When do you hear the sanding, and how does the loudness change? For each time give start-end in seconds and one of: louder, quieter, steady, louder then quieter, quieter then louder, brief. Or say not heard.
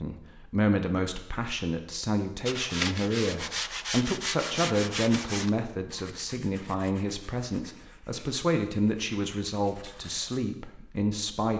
2.5-10.4 quieter.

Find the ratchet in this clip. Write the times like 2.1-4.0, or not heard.
not heard.